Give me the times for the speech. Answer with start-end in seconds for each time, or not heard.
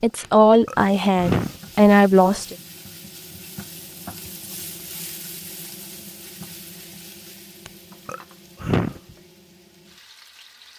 0.0-2.5.